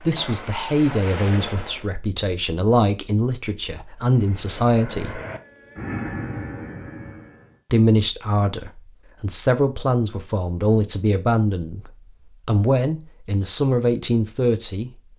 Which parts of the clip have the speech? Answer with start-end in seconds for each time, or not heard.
0.0-5.2, 7.7-14.9.